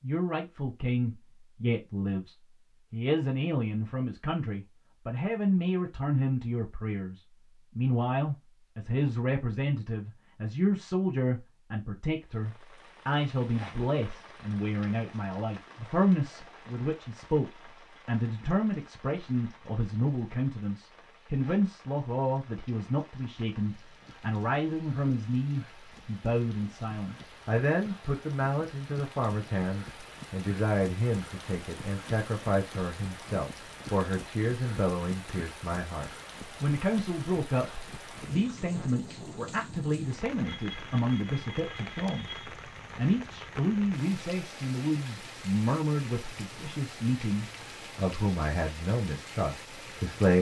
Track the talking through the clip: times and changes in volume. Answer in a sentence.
The talking can be heard from 0.0 to 50.3 s, at a steady volume.